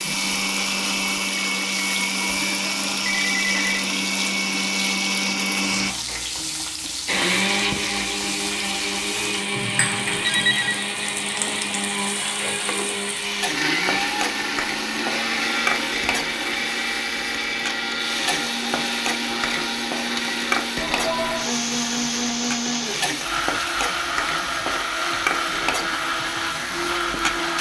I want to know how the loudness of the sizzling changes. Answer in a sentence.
The loudness of the sizzling stays about the same.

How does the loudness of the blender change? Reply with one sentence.
The volume of the blender stays about the same.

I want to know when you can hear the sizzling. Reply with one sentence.
You can hear the sizzling from 0.0 to 27.5 s.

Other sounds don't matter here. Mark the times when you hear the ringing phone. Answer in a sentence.
You can hear the ringing phone from 2.2 to 3.8 s, from 9.6 to 10.8 s and from 20.8 to 21.5 s.